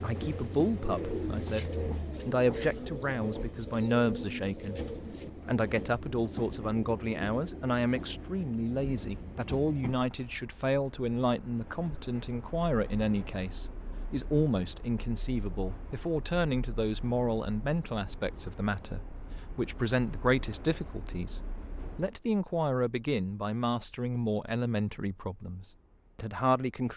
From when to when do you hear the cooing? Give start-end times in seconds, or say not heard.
0.0-6.0.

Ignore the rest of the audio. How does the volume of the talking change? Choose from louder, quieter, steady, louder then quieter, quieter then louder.
steady.